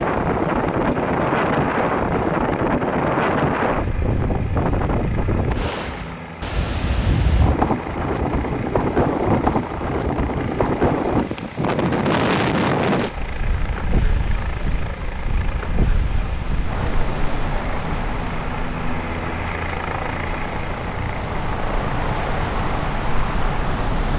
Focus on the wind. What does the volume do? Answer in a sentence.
The volume of the wind goes down.